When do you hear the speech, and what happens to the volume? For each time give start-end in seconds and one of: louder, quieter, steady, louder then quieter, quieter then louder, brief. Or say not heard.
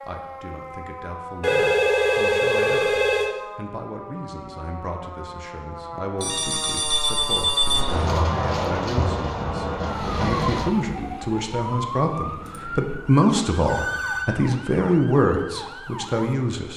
0.0-16.7 louder.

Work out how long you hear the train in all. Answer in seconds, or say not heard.
3 s.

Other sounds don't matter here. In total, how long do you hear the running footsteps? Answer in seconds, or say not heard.
not heard.